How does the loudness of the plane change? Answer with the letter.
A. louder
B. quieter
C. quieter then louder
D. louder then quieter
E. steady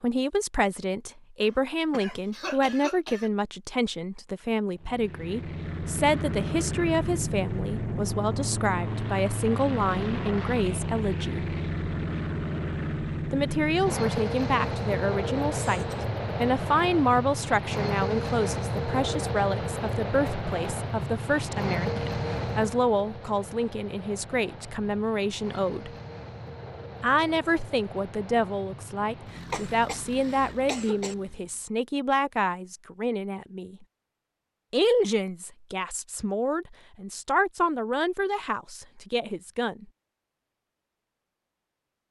B.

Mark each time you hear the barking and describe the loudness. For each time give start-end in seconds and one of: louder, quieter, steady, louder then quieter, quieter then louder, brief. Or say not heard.
not heard.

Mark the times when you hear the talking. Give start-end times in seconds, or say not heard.
0.0-11.4, 13.3-25.9, 27.0-33.9, 34.7-39.9.